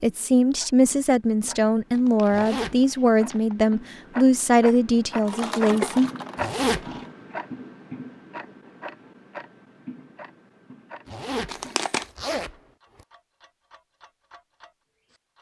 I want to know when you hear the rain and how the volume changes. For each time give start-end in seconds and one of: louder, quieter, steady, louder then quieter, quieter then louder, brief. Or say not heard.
not heard.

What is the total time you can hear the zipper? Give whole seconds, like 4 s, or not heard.
3 s.